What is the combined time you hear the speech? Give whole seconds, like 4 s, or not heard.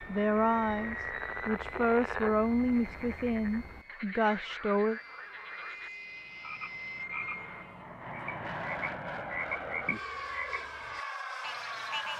5 s.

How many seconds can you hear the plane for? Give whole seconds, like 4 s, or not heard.
12 s.